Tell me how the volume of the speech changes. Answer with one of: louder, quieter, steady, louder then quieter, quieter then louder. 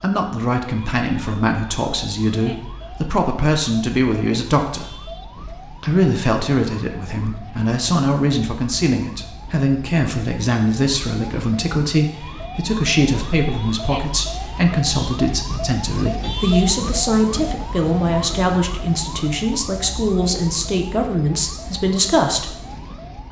steady.